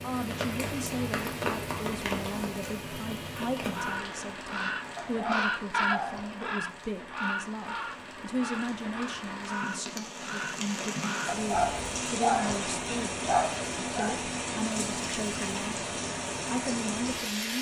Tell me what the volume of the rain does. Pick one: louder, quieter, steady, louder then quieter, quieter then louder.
quieter then louder.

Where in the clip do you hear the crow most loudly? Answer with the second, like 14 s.
6 s.